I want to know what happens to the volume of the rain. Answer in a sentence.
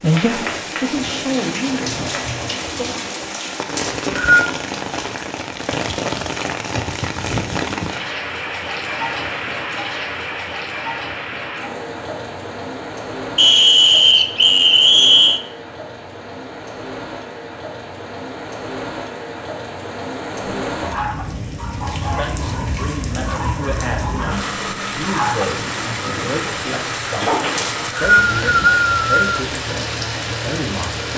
The loudness of the rain goes down, then up.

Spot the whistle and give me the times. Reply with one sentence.
You can hear the whistle from 3.8 to 4.5 s, from 13.3 to 15.4 s and from 27.6 to 29.3 s.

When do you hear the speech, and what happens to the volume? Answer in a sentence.
The speech can be heard briefly from 0.0 to 2.9 s; and from 21.9 to 31.1 s, at a steady volume.